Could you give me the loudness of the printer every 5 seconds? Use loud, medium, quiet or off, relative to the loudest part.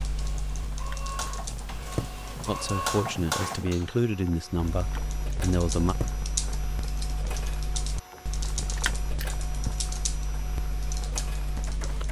loud, medium, medium.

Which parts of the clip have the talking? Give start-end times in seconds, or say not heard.
2.5-6.0.